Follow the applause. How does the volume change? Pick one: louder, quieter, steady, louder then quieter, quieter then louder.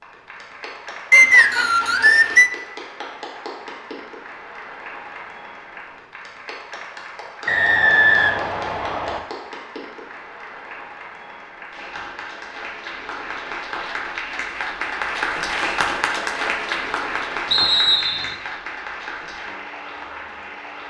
louder.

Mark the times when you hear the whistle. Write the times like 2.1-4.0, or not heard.
1.1-2.5, 7.5-9.2, 17.5-18.4.